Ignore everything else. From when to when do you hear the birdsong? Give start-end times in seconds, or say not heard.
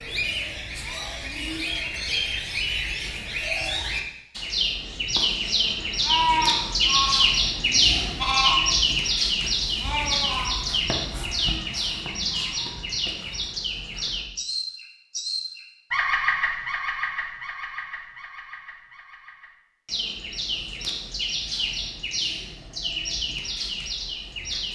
0.0-24.6.